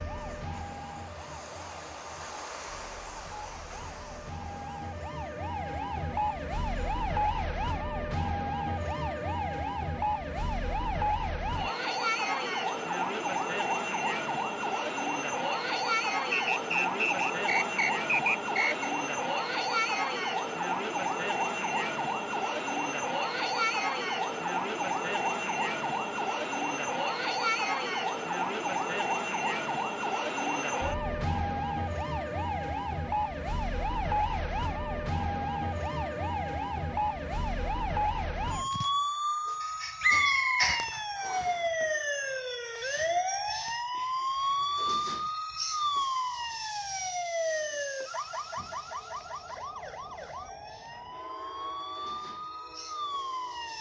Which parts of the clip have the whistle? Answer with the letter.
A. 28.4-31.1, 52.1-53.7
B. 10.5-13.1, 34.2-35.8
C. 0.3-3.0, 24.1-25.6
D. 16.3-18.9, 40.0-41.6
D.